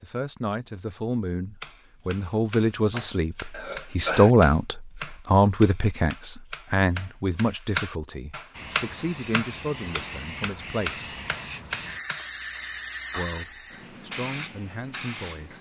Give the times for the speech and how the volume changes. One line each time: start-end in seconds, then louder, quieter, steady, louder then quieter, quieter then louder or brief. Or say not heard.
0.0-11.1 louder then quieter
13.2-15.5 brief.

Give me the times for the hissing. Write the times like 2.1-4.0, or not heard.
8.5-15.5.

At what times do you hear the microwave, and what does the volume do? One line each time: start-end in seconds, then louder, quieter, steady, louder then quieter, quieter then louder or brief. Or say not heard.
not heard.